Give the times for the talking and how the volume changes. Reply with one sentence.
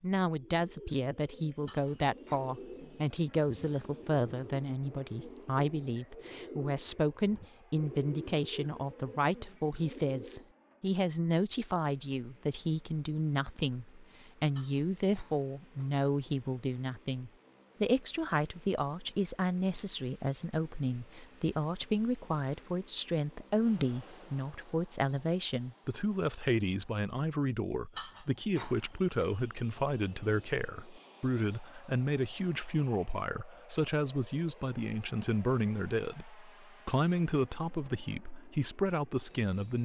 You can hear the talking from 0.0 to 39.8 s, at a steady volume.